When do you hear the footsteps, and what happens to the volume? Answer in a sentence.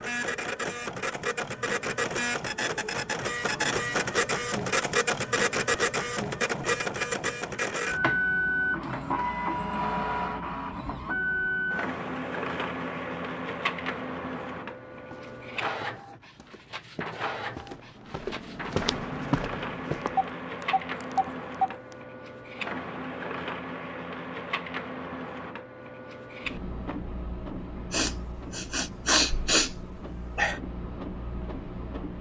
The footsteps can be heard from 14.9 to 20.4 s, getting louder.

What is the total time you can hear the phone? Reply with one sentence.
The phone can be heard for 2 seconds in total.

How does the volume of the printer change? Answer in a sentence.
The volume of the printer goes down.